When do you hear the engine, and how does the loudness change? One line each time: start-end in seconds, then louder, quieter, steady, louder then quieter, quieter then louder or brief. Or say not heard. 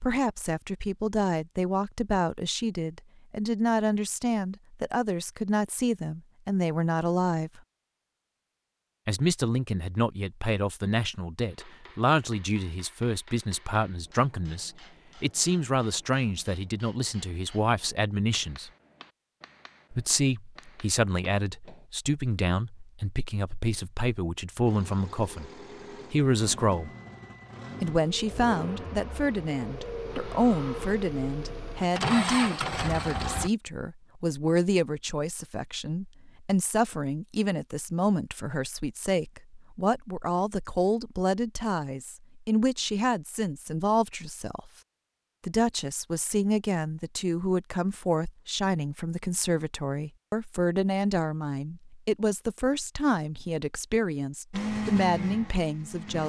24.6-33.5 louder
54.5-56.2 brief.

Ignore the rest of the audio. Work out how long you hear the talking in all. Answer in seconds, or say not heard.
51 s.